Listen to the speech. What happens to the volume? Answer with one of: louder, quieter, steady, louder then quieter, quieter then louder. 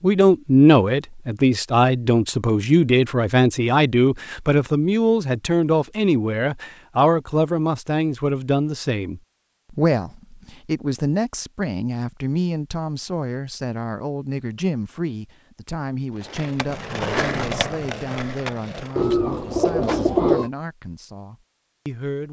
quieter.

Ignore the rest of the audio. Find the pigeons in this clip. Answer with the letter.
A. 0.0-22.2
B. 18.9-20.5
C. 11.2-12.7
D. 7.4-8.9
B.